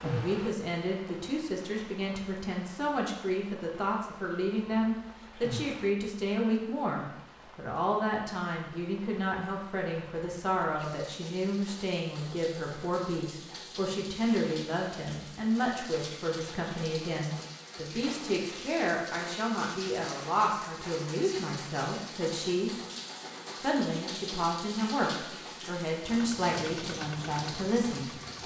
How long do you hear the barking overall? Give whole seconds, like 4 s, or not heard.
not heard.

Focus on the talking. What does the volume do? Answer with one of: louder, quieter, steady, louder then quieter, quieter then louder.
steady.